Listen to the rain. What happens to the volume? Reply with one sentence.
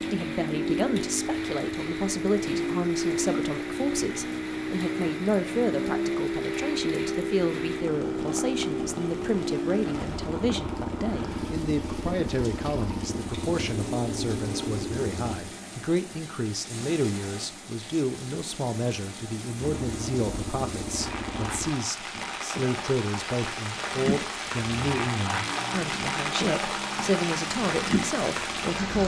The volume of the rain goes up.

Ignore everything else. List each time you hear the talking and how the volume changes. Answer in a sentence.
The talking can be heard from 0.0 to 29.0 s, at a steady volume.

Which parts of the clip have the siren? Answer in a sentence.
The siren can't be heard in this clip.